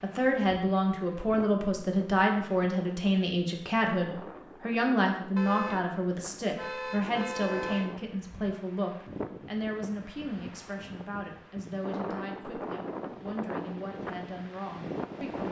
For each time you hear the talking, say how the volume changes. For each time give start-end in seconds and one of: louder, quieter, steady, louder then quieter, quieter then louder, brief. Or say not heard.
0.0-15.4 quieter.